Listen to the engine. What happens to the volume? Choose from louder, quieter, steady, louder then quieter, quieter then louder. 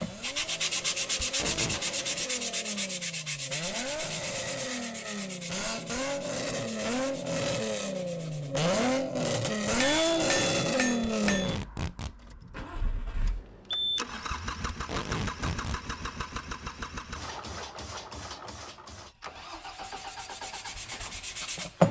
louder then quieter.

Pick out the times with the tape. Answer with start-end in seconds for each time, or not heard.
1.2-1.8, 11.2-12.2, 14.7-15.8.